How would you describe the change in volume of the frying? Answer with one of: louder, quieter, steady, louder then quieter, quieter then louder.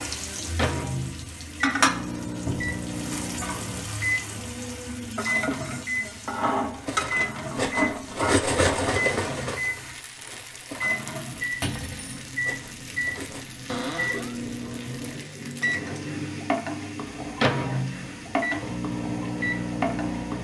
quieter then louder.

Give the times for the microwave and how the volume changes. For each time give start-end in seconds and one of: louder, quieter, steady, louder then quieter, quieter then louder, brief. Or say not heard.
0.0-20.3 steady.